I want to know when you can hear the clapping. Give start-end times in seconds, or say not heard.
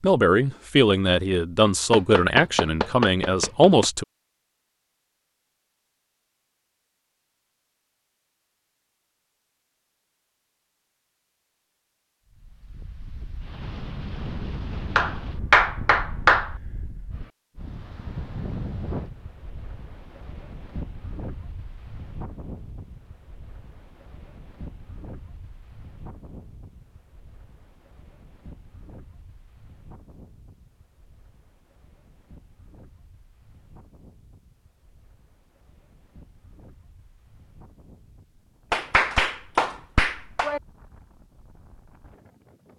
1.9-3.9, 14.9-16.5, 38.7-40.6.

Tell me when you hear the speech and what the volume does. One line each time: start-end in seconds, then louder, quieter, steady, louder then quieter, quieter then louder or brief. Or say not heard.
0.0-4.0 steady.